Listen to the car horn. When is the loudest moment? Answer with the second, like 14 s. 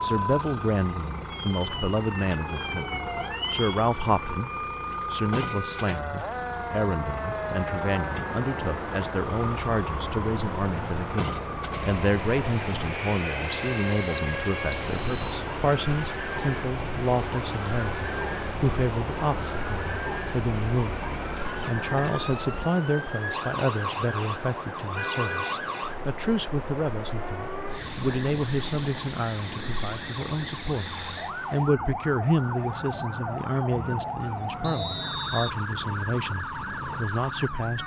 25 s.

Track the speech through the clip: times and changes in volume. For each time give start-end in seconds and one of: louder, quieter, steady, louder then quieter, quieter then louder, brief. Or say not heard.
0.0-4.5 quieter then louder
5.1-37.8 steady.